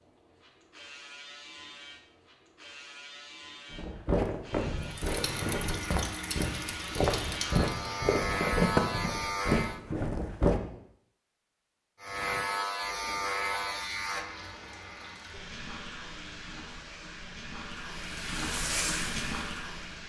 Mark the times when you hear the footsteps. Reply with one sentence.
The footsteps can be heard from 3.7 to 10.6 s.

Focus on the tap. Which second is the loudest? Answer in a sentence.
The loudest moment of the tap is at 19 seconds.